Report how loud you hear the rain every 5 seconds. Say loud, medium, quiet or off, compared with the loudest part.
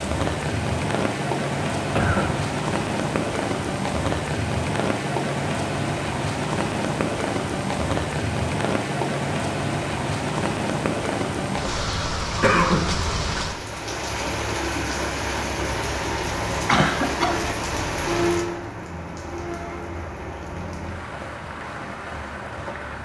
loud, loud, loud, loud, medium.